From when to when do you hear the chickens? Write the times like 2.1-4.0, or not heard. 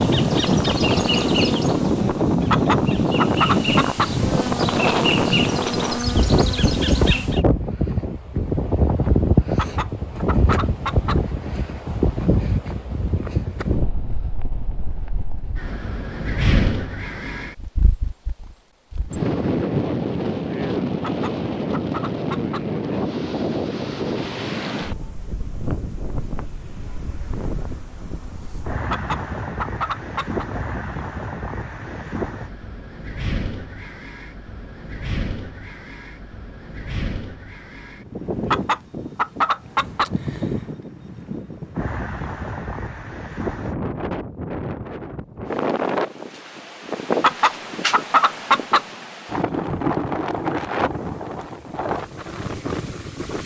2.5-4.1, 9.6-11.2, 21.0-22.6, 28.9-30.4, 38.5-40.1, 47.2-48.8.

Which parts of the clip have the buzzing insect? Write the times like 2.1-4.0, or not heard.
0.0-7.5.